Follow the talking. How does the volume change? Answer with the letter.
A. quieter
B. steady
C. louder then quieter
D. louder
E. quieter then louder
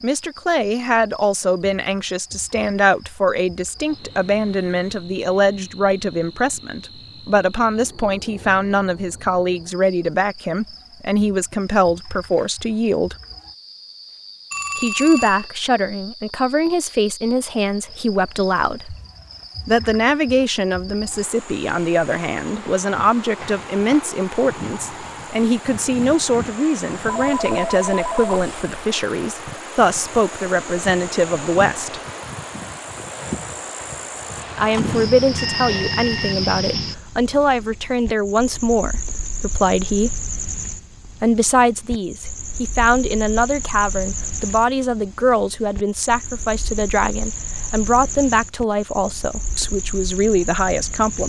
B.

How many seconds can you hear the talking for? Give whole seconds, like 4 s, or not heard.
45 s.